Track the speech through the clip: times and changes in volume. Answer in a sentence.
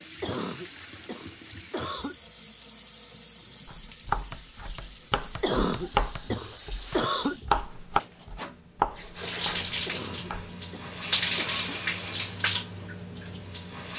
The speech can't be heard in this clip.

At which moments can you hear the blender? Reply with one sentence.
You can't hear the blender here.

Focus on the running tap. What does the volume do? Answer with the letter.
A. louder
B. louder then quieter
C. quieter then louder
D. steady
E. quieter
A.